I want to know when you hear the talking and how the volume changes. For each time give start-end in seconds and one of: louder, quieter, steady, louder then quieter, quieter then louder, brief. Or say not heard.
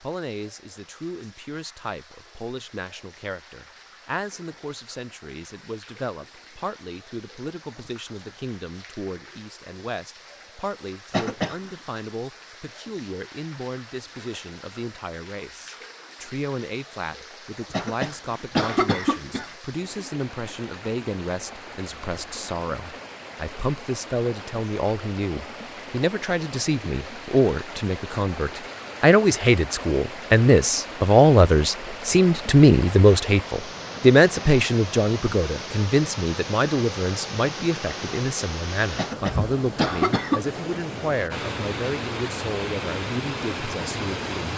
0.0-44.5 louder then quieter.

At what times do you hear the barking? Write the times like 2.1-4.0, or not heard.
not heard.